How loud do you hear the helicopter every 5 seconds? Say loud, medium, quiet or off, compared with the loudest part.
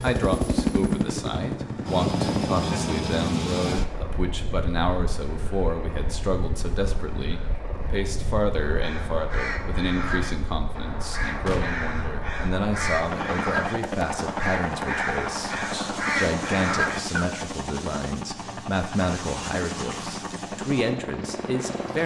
loud, medium, medium, medium, medium.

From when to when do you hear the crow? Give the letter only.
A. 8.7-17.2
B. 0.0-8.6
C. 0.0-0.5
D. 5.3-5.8
A.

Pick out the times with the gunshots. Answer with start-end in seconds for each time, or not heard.
11.4-11.9.